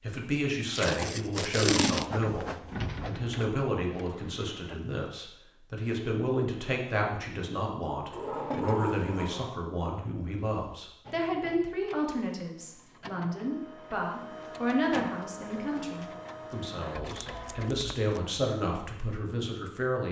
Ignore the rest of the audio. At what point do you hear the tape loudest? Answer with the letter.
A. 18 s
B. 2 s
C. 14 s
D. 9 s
B.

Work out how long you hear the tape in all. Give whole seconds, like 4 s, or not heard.
2 s.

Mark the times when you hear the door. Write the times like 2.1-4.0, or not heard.
2.2-3.4, 8.1-9.6, 14.3-16.1.